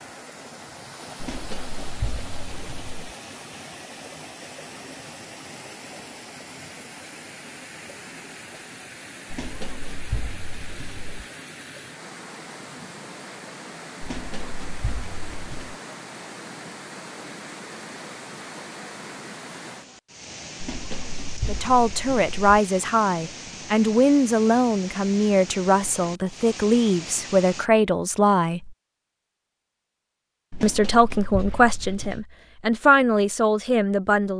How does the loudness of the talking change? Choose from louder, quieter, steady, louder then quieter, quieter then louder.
steady.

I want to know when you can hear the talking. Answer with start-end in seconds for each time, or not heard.
21.4-28.8, 30.6-34.3.